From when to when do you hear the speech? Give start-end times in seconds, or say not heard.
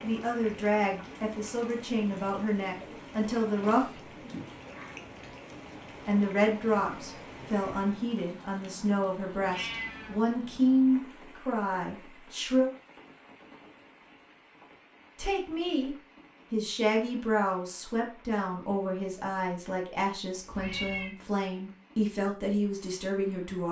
0.0-4.1, 6.0-12.7, 15.2-23.6.